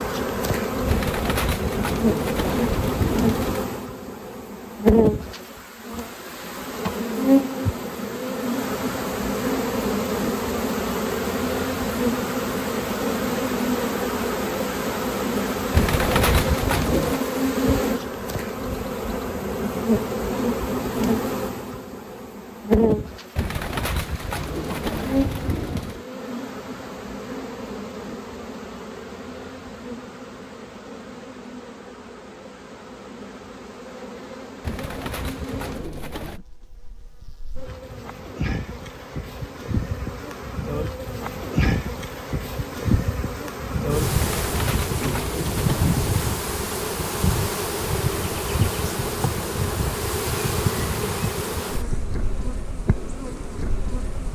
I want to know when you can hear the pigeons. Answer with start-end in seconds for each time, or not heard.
0.8-3.6, 15.7-17.2, 23.4-26.0, 34.6-36.4, 44.1-46.4.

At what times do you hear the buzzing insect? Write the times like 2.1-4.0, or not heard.
0.0-54.3.